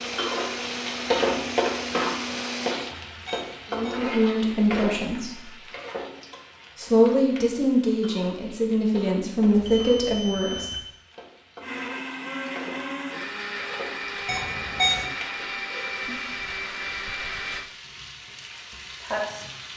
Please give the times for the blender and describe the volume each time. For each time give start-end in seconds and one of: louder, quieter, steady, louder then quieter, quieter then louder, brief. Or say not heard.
0.0-3.0 brief
11.6-17.7 steady.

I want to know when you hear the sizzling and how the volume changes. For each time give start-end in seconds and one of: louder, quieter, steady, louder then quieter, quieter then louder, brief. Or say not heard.
0.0-19.7 quieter then louder.